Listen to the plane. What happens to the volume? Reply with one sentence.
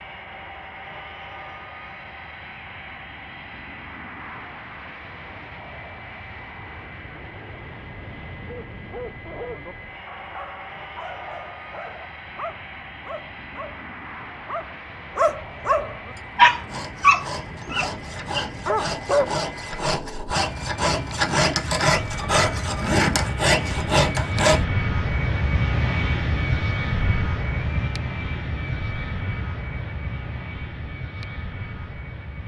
The volume of the plane goes up.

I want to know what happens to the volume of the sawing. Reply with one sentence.
The loudness of the sawing goes up.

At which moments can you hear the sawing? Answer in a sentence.
The sawing can be heard from 16.1 to 24.6 s.